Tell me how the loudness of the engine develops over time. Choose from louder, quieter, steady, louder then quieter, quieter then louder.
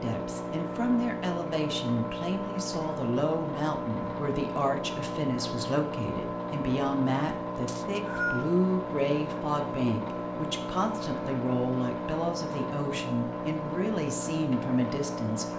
steady.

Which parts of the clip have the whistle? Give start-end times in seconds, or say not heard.
7.7-8.5.